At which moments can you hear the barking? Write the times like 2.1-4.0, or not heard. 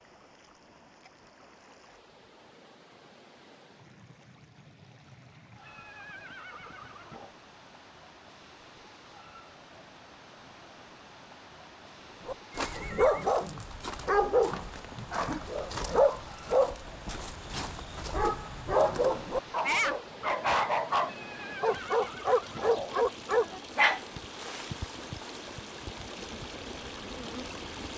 12.2-24.1.